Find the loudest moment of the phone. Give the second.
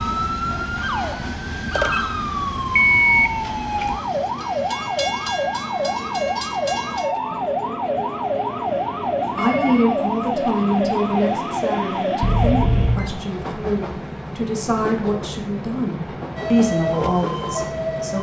3 s.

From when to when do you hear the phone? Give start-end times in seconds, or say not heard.
2.8-3.3, 9.3-10.0, 12.2-13.1.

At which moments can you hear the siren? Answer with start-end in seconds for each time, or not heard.
0.0-12.7, 16.4-18.1.